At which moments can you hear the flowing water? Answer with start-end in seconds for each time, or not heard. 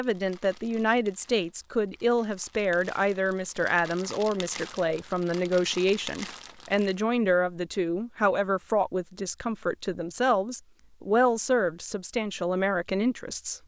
not heard.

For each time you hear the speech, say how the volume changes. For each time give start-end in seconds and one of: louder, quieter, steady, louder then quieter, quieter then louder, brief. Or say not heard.
0.0-13.6 steady.